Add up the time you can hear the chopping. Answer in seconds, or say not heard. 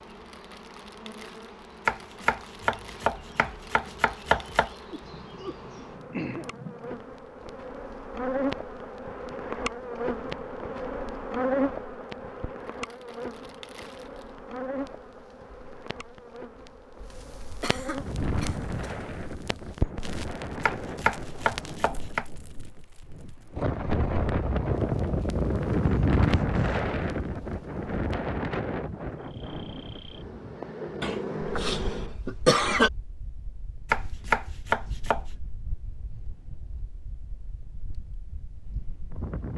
6 s.